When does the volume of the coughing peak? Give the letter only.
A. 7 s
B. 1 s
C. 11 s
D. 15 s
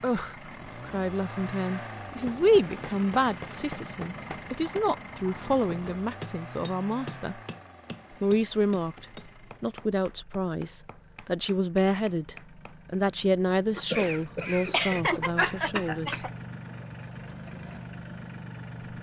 D.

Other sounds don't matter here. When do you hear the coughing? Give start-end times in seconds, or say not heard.
13.8-16.3.